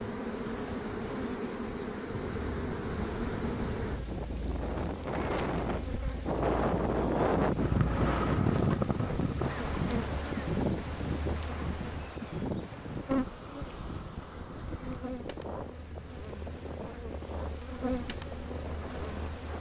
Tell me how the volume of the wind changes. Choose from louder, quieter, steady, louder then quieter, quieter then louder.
louder then quieter.